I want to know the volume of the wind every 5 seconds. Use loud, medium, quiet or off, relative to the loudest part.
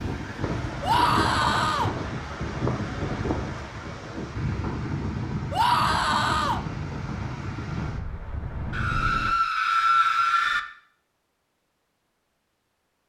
loud, loud, off.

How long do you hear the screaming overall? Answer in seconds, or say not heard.
4 s.